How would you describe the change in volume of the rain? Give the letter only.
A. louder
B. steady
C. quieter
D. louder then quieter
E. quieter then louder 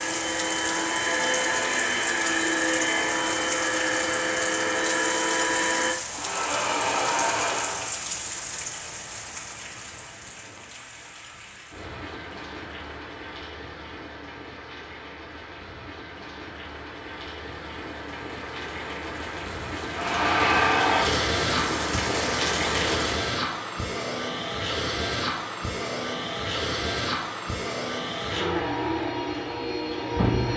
E.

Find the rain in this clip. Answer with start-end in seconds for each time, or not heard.
0.0-23.4.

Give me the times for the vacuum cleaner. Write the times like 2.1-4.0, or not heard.
0.0-8.0, 19.9-30.5.